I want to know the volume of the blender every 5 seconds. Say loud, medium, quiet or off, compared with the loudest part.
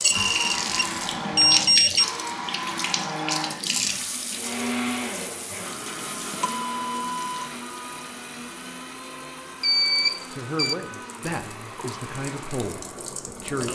loud, medium, medium.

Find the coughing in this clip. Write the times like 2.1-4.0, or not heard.
not heard.